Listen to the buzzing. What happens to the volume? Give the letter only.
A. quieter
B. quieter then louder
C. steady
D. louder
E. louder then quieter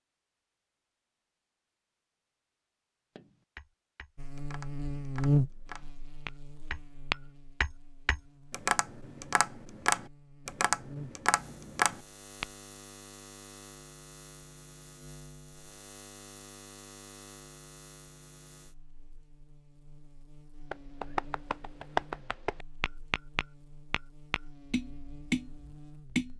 A.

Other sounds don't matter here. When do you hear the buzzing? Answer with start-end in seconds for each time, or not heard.
4.2-26.3.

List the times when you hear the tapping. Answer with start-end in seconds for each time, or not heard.
3.1-12.4, 20.7-26.3.